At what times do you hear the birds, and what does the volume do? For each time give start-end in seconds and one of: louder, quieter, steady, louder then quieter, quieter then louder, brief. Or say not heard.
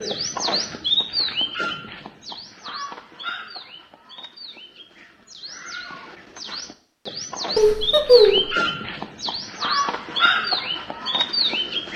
0.0-11.9 quieter then louder.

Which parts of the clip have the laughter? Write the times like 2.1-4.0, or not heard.
7.5-8.5.